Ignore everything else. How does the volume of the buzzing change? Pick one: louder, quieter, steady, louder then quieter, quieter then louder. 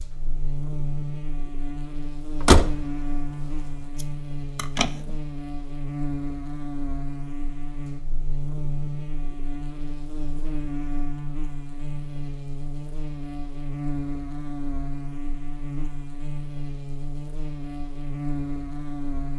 steady.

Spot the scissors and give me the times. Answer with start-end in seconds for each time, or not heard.
4.0-5.2.